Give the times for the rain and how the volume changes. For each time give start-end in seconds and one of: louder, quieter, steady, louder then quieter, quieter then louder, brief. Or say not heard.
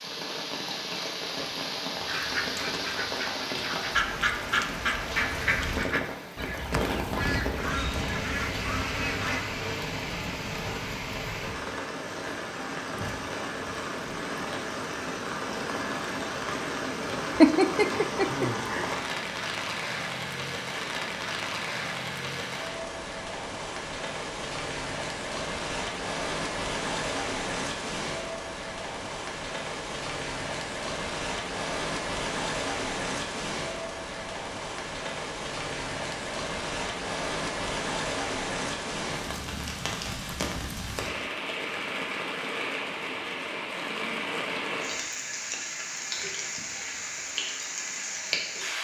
0.0-48.7 steady.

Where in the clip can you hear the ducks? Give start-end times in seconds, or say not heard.
2.0-9.4.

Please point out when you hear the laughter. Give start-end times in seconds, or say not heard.
17.4-18.9.